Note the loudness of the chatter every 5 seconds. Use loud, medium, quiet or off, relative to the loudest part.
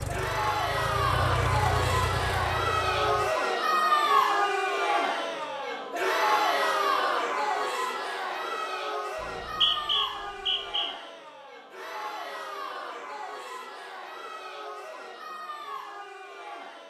loud, loud, quiet, quiet.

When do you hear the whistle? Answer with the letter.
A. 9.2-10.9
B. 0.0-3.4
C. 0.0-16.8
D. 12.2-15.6
A.